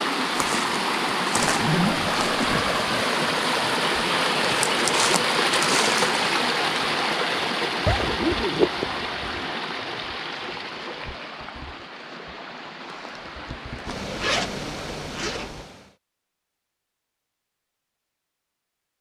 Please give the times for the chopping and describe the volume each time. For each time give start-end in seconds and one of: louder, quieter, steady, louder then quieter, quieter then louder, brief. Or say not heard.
not heard.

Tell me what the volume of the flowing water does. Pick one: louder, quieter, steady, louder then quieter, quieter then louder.
quieter.